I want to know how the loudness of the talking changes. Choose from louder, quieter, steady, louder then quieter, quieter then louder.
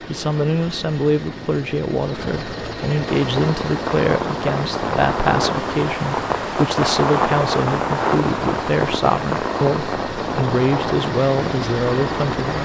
steady.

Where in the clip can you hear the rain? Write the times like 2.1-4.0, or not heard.
3.0-12.6.